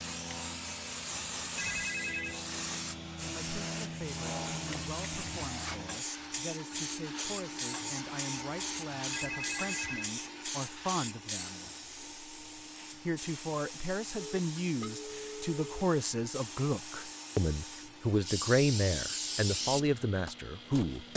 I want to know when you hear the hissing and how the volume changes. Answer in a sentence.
You can hear the hissing from 0.0 to 21.1 s, getting quieter then louder.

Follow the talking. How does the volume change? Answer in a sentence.
The volume of the talking goes up.